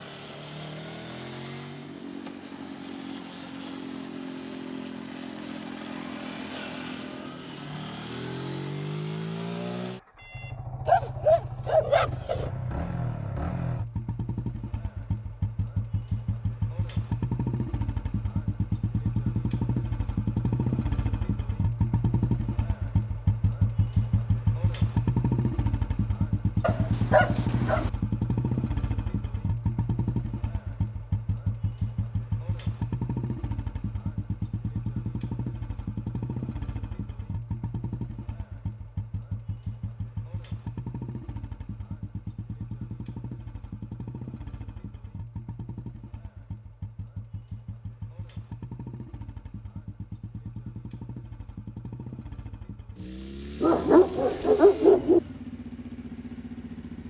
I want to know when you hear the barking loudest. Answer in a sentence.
The loudest moment of the barking is at 55 seconds.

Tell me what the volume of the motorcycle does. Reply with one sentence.
The volume of the motorcycle goes up, then down.